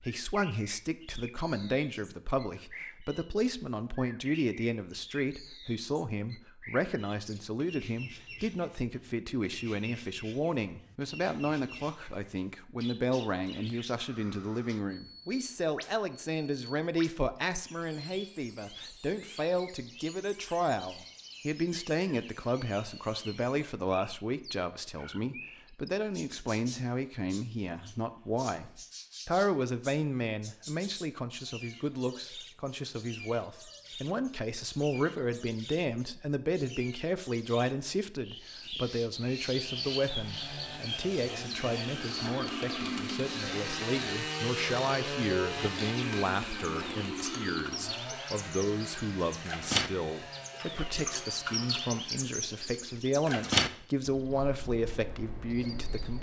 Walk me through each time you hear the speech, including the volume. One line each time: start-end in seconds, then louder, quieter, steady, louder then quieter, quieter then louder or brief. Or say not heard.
0.0-56.1 steady.